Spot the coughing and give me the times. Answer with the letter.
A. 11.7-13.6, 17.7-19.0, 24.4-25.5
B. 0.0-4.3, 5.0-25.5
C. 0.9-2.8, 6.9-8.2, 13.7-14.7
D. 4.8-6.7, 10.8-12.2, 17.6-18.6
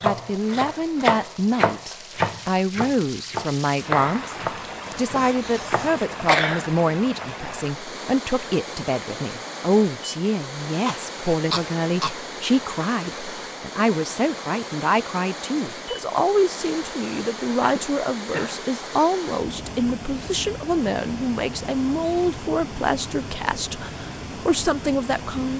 D.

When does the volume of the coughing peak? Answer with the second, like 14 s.
6 s.